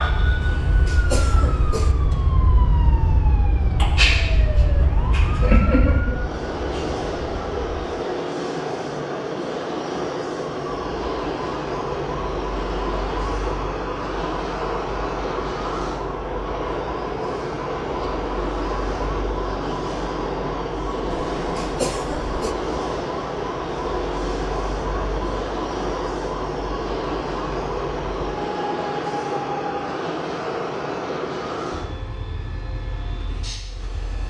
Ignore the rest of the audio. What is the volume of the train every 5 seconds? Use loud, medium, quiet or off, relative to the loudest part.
quiet, loud, loud, loud, loud, loud, loud.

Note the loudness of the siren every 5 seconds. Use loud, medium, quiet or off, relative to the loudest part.
loud, loud, medium, medium, medium, medium, off.